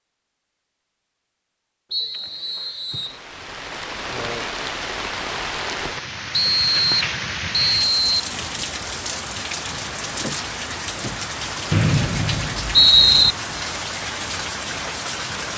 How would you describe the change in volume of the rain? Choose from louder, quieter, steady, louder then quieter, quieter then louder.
steady.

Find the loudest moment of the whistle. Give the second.
13 s.